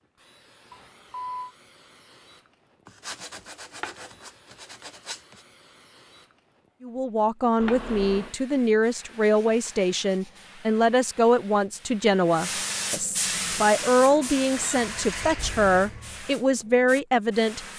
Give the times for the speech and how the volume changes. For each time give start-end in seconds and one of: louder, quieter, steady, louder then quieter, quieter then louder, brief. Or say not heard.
6.8-17.6 steady.